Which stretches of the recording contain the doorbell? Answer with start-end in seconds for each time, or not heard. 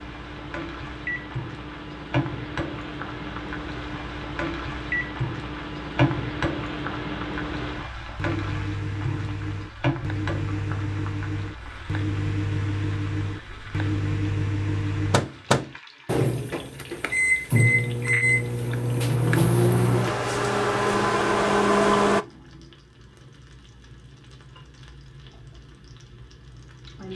not heard.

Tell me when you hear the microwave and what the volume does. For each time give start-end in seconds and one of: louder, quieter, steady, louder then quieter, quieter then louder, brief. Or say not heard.
0.0-22.2 louder.